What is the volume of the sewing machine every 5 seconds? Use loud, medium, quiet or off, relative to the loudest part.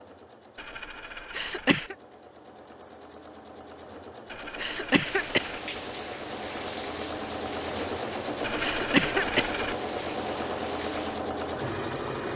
quiet, loud, loud.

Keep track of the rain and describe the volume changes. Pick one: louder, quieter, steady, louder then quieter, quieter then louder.
steady.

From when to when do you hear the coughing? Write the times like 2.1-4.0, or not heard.
1.3-1.9, 4.5-5.5, 8.6-9.5.